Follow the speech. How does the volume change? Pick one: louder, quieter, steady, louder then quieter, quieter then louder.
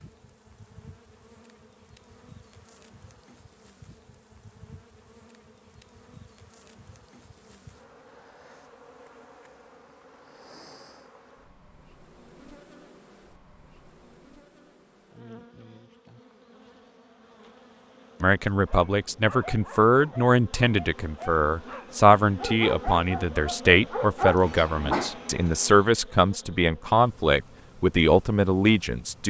steady.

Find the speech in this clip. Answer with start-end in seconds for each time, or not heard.
18.2-29.2.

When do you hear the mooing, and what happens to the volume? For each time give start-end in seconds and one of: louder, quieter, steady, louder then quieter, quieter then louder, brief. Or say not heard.
not heard.